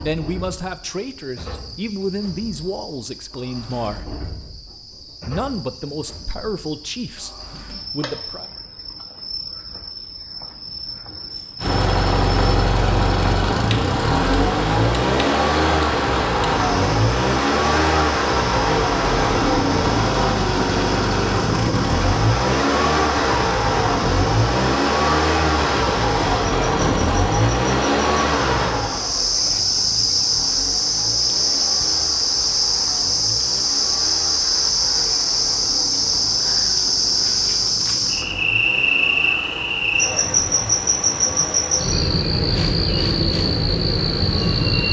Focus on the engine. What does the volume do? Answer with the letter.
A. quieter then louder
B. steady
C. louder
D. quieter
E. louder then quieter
D.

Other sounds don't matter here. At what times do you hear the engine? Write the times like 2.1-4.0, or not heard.
11.6-44.8.